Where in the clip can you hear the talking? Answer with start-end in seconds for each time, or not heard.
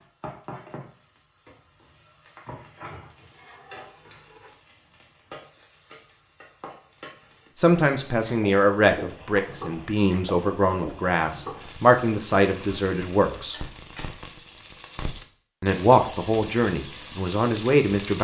7.5-13.6, 15.6-18.1.